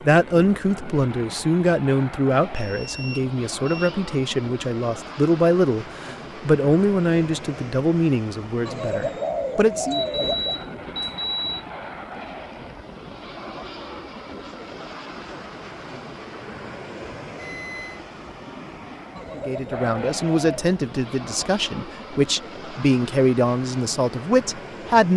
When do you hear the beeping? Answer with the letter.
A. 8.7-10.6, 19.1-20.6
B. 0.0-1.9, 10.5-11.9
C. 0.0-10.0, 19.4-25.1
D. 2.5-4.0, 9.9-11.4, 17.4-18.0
D.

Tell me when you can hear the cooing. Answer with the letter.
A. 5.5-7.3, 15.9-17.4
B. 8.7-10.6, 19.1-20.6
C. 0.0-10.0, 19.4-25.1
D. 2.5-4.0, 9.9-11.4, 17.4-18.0
B.